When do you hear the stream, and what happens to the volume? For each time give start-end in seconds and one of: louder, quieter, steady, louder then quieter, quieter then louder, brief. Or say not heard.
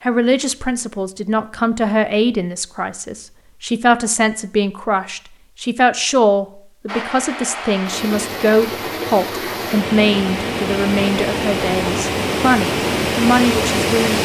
6.8-14.2 louder.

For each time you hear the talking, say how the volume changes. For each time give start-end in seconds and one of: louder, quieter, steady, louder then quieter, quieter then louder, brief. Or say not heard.
0.0-14.2 steady.